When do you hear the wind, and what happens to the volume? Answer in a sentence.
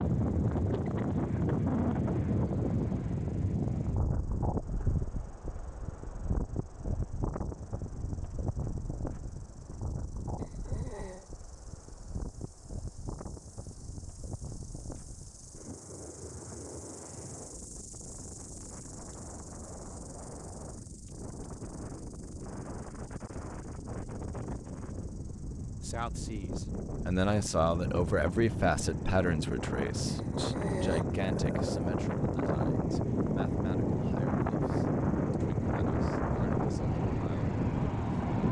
The wind can be heard from 0.0 to 38.4 s, getting quieter then louder.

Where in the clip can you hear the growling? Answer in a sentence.
The growling can be heard from 10.3 to 11.3 s and from 30.1 to 31.9 s.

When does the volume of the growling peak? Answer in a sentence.
The volume of the growling peaks at 31 seconds.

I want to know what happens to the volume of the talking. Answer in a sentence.
The loudness of the talking goes down.